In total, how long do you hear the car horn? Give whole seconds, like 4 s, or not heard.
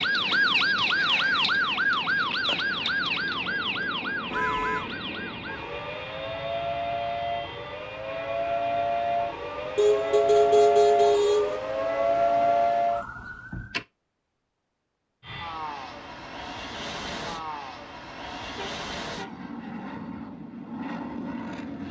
3 s.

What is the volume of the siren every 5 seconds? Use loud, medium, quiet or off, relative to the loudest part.
loud, medium, loud, off, off.